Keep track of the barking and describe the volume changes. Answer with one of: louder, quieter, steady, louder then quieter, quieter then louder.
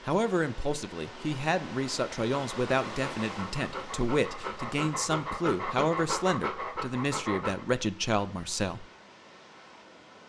louder.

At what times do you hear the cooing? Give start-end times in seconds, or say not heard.
not heard.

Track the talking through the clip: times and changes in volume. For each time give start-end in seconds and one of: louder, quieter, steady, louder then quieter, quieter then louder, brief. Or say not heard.
0.0-8.8 steady.